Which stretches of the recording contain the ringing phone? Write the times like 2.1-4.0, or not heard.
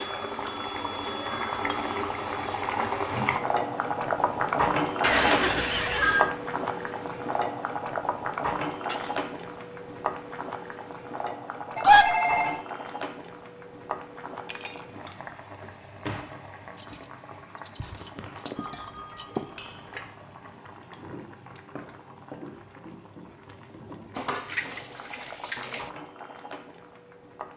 5.0-6.3, 11.8-12.6, 18.6-20.0.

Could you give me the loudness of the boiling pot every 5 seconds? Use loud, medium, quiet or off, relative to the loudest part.
loud, loud, medium, quiet, quiet, quiet.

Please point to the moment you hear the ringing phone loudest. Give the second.
12 s.